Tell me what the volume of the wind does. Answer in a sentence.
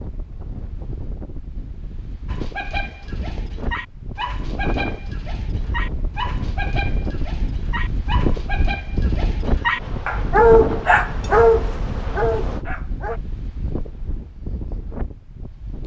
The loudness of the wind goes up, then down.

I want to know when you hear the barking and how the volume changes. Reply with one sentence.
You can hear the barking from 2.2 to 13.2 s, getting louder.